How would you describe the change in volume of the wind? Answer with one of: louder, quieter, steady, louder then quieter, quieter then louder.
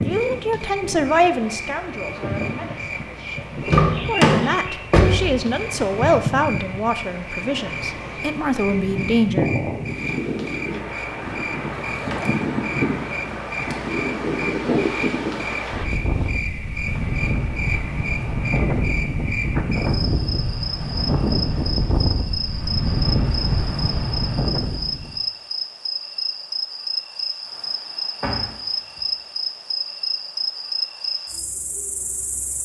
louder.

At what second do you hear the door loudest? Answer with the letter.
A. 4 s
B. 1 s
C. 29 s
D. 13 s
A.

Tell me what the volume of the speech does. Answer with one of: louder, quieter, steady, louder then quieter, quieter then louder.
quieter then louder.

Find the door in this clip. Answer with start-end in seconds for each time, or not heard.
3.6-5.3, 11.8-12.4, 13.6-14.0, 28.2-29.0.